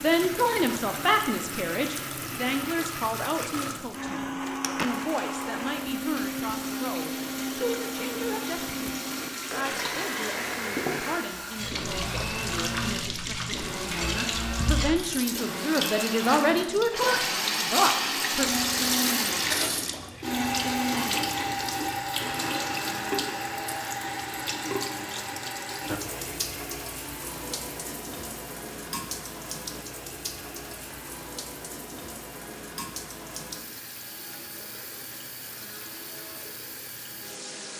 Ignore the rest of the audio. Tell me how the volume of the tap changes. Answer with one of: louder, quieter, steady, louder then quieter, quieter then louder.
louder then quieter.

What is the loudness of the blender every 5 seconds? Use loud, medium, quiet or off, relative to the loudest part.
loud, loud, loud, loud, loud, quiet, quiet, quiet.